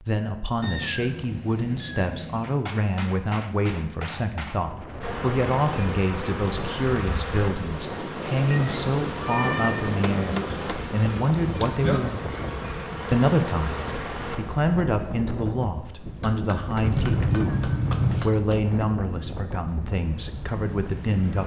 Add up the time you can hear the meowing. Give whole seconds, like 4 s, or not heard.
5 s.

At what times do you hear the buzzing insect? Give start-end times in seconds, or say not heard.
5.0-14.4.